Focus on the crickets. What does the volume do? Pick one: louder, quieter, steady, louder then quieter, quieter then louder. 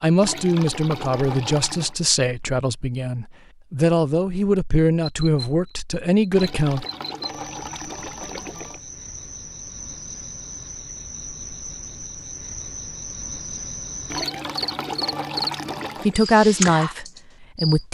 louder.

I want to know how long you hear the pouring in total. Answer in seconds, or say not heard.
6 s.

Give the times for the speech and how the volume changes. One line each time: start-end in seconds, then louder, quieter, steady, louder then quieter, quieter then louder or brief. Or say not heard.
0.0-6.8 steady
16.1-17.9 brief.